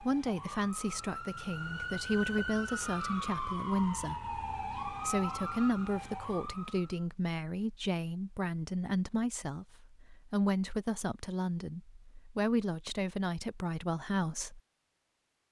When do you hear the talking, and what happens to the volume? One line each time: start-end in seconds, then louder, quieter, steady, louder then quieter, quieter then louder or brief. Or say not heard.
0.0-14.6 steady.